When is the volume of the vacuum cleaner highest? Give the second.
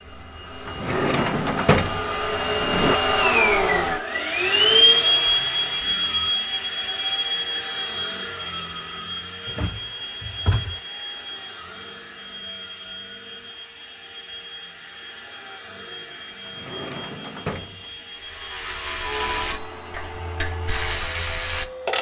5 s.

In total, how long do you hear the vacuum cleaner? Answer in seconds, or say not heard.
22 s.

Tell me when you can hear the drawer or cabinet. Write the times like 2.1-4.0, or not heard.
0.7-3.0, 9.4-10.8, 16.4-17.9.